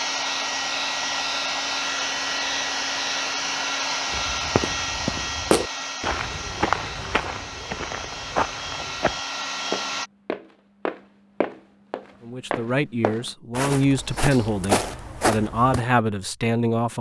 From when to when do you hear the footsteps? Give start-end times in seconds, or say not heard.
4.1-15.8.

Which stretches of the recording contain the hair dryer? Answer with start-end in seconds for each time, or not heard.
0.0-10.1.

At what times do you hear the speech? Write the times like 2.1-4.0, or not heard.
12.2-16.9.